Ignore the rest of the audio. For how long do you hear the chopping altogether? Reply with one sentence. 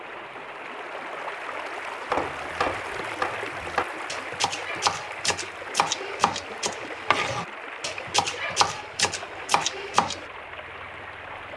You can hear the chopping for 8 seconds altogether.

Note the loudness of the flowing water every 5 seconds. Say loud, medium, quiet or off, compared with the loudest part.
loud, loud, medium.